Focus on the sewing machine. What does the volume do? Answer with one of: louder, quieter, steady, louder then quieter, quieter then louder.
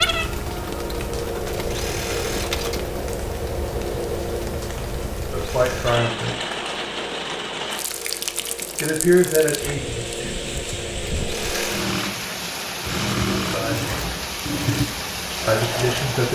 quieter then louder.